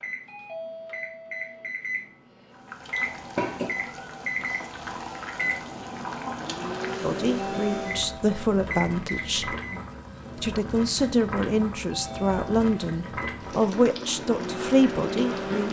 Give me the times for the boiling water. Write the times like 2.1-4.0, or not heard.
2.5-15.6.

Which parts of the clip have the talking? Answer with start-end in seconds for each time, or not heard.
7.0-9.6, 10.4-15.6.